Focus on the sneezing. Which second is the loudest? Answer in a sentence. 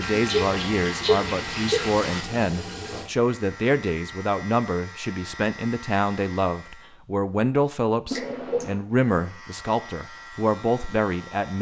The volume of the sneezing peaks at 1 second.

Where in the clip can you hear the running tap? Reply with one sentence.
The running tap can be heard from 0.0 to 3.1 s.